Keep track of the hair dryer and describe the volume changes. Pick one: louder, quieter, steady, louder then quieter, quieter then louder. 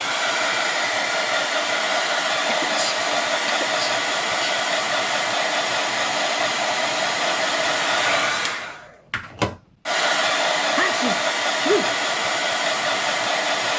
steady.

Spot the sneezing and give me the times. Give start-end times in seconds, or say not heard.
2.0-4.5, 10.8-11.9.